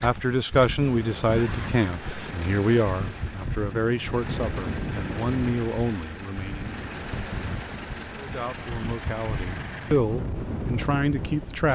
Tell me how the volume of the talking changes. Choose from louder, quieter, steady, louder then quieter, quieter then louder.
quieter then louder.